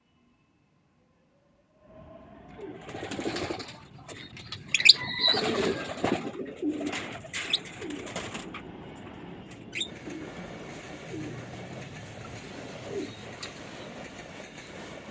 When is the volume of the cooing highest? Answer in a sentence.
The volume of the cooing peaks at 5 seconds.